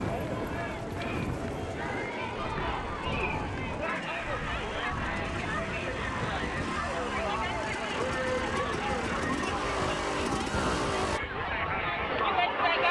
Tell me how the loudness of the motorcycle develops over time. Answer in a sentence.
The loudness of the motorcycle goes up.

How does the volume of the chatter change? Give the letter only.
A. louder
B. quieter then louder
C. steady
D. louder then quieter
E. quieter
C.